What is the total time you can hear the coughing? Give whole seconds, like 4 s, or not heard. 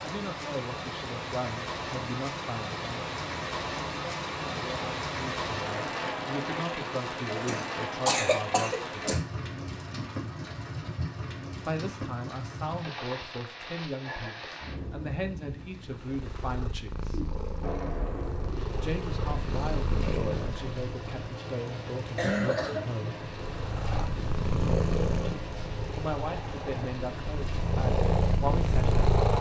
3 s.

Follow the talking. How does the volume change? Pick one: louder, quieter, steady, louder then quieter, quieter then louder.
steady.